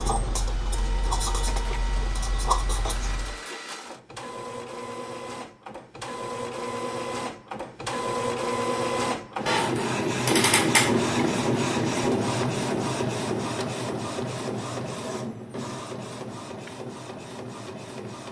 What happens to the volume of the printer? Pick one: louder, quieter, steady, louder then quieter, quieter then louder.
louder then quieter.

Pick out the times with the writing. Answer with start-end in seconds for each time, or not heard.
0.0-3.4.